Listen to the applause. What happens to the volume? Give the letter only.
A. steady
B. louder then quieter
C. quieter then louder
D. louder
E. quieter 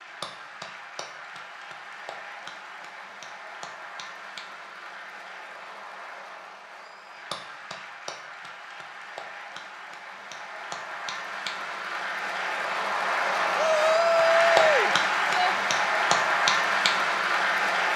D.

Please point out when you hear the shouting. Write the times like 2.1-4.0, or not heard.
13.6-15.6.